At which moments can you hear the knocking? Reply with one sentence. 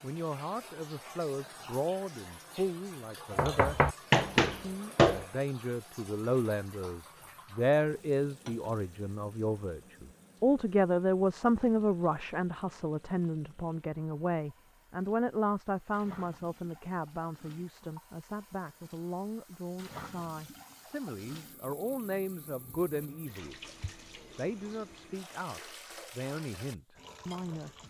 The knocking can be heard from 3.3 to 5.2 s.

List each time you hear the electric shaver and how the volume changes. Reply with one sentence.
The electric shaver can't be heard in this clip.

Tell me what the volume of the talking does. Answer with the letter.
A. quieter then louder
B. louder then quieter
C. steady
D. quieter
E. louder
B.